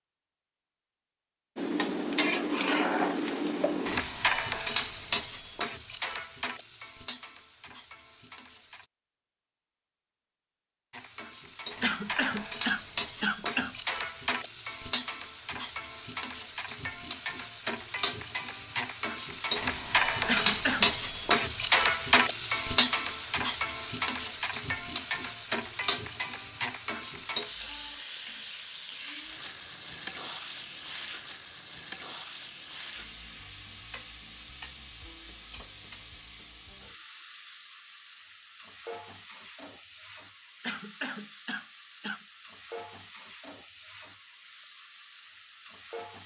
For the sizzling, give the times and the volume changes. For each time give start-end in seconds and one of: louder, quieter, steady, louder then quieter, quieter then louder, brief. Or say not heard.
1.6-8.8 quieter
10.9-46.2 louder then quieter.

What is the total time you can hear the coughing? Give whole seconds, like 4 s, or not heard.
4 s.